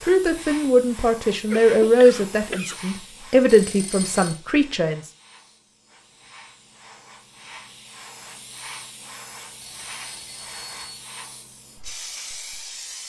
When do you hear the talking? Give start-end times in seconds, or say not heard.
0.1-5.0.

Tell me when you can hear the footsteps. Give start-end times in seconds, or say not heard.
not heard.